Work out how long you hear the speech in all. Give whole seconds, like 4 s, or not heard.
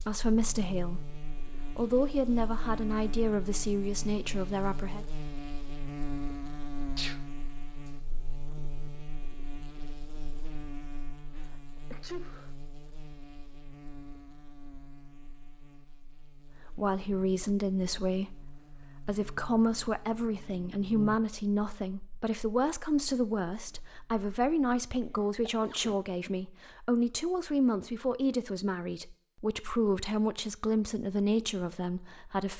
21 s.